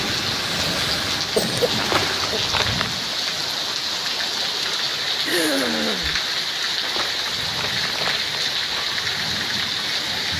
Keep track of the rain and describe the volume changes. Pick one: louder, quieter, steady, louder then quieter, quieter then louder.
steady.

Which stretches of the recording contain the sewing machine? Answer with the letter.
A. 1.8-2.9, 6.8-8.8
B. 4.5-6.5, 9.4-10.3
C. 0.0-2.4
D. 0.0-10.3
C.